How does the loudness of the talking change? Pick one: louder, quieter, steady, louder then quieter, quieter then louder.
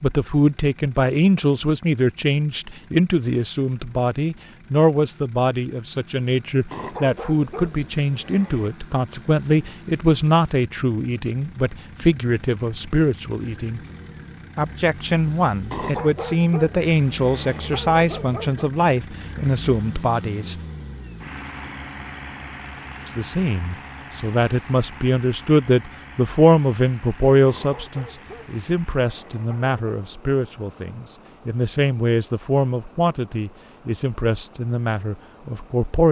steady.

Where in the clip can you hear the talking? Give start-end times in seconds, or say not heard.
0.0-13.8, 14.6-20.6, 23.1-36.0.